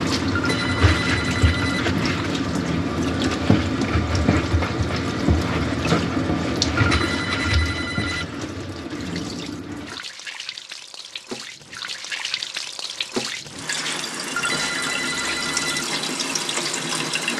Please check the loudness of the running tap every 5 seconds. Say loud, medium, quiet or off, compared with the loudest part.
loud, loud, medium, loud.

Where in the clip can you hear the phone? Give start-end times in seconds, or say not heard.
0.3-1.9, 6.8-8.2, 14.3-15.8.